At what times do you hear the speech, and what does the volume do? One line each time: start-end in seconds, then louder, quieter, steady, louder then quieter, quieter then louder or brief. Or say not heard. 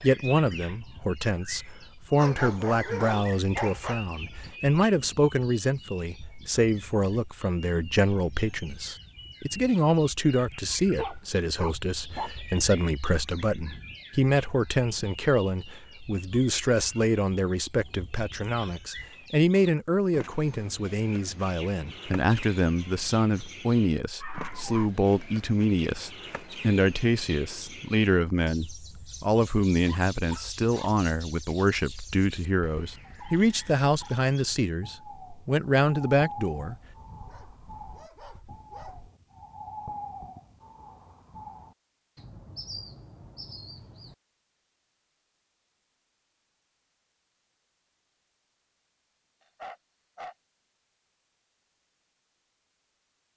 0.0-36.8 steady.